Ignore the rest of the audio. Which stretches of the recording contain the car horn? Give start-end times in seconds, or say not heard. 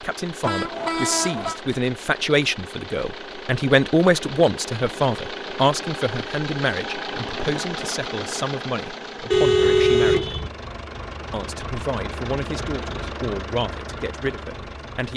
0.4-1.6, 9.3-10.5.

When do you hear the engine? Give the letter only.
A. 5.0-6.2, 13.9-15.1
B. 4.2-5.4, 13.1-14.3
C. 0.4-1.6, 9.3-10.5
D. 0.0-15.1
D.